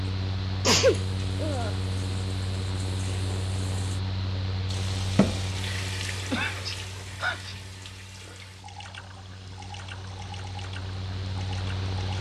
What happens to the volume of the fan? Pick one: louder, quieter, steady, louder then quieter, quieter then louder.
quieter then louder.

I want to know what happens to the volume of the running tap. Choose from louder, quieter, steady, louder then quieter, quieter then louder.
louder then quieter.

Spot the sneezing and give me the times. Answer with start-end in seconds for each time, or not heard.
0.6-1.7, 6.3-7.5.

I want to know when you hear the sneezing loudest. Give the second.
1 s.